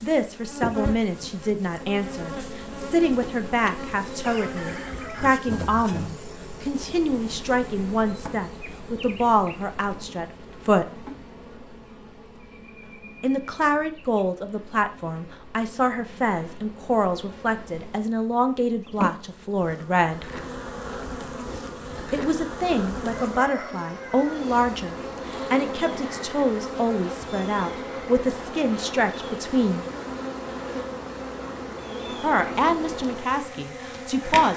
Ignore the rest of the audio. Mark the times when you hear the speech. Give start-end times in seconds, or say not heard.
0.0-11.0, 13.2-20.2, 22.1-29.9, 32.1-34.5.